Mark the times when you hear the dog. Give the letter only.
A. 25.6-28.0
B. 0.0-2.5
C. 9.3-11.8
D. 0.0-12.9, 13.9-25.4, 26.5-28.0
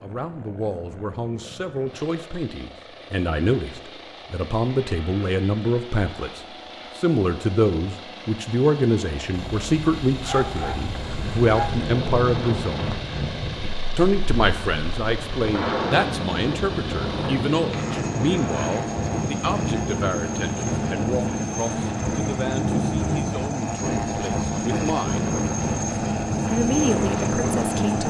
C.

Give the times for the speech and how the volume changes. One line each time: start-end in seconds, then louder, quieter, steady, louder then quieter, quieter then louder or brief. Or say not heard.
0.0-12.9 louder
13.9-25.4 quieter
26.5-28.0 brief.